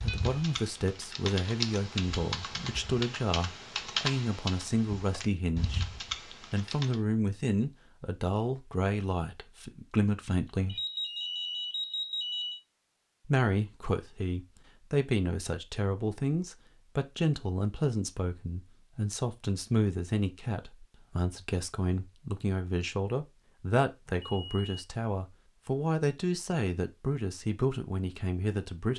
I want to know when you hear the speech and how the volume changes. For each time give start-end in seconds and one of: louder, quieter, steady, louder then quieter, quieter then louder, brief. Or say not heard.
0.0-5.8 steady
6.5-10.8 quieter then louder
13.2-28.9 steady.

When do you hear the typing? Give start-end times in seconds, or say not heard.
0.0-7.0.